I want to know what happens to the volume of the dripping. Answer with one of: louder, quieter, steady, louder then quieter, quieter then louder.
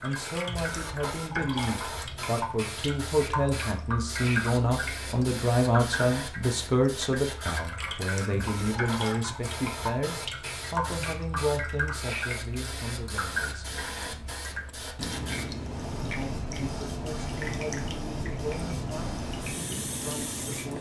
steady.